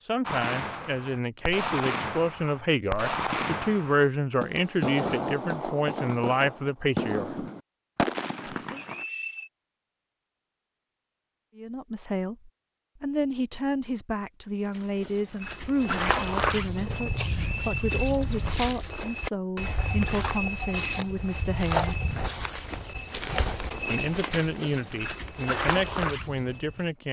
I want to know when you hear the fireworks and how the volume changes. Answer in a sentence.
You can hear the fireworks from 0.2 to 9.1 s, at a steady volume.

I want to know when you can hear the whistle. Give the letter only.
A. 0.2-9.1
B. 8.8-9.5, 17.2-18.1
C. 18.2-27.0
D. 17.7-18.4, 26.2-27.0
B.